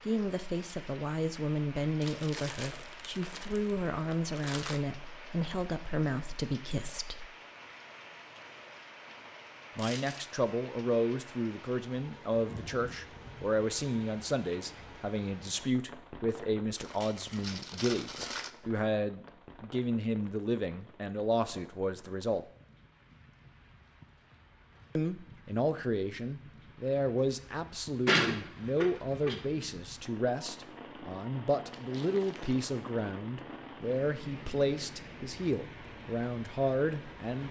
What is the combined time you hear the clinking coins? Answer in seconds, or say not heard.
4 s.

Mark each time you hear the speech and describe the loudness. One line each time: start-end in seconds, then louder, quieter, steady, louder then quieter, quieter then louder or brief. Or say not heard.
0.1-7.3 steady
9.8-22.4 steady
24.9-37.4 steady.